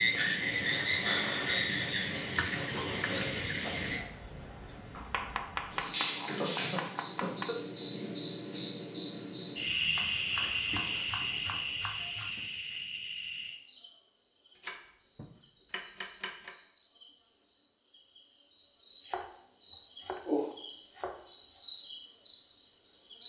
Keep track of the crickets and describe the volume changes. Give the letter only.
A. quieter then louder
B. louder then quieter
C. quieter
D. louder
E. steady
A.